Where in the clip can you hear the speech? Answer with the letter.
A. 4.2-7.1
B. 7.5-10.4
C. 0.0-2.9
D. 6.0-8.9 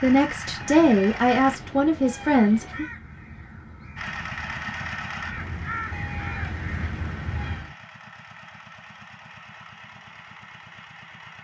C.